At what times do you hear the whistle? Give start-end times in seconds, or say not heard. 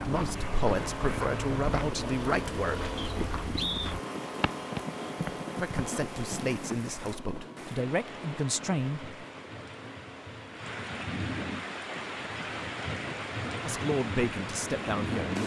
3.0-4.0.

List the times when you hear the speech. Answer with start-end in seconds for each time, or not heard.
0.0-2.9, 5.5-9.1, 13.7-15.4.